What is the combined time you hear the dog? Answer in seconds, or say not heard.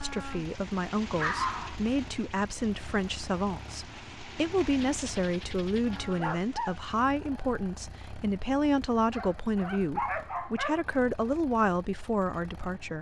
4 s.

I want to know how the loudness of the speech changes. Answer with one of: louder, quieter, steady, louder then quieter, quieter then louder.
steady.